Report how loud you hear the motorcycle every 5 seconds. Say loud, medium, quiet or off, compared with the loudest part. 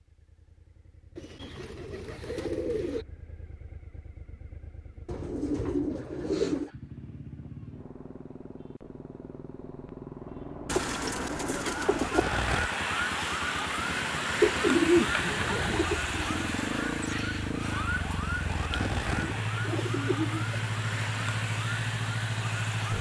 quiet, quiet, medium, loud, loud.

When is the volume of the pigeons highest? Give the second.
15 s.